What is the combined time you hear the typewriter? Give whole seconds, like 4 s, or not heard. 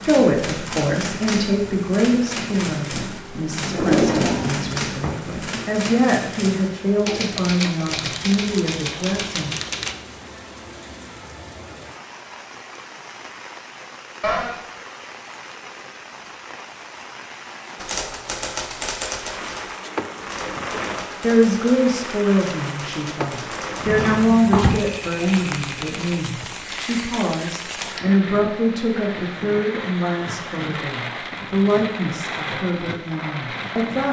20 s.